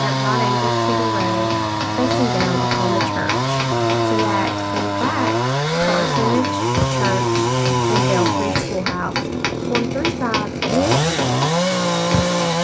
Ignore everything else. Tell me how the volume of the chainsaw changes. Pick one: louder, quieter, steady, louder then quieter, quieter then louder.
steady.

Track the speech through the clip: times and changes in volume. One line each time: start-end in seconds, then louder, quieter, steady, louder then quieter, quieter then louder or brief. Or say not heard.
0.0-10.6 steady.